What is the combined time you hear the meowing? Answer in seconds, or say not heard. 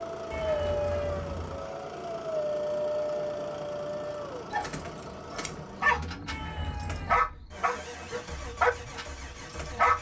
2 s.